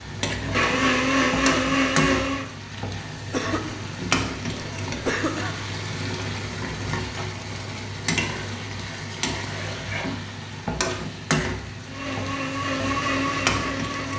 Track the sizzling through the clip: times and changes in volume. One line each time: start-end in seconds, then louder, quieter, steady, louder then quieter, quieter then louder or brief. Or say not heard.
0.0-14.1 steady.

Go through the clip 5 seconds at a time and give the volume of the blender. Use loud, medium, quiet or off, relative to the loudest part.
loud, off, medium.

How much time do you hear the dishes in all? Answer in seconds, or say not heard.
not heard.